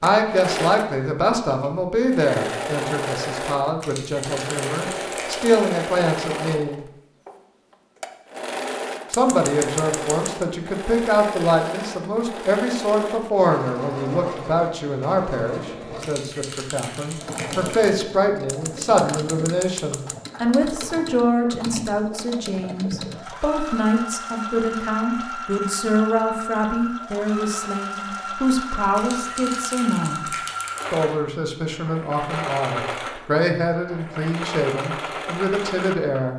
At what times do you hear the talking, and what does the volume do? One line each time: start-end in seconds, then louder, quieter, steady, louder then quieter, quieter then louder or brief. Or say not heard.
0.0-6.8 quieter then louder
9.1-36.3 steady.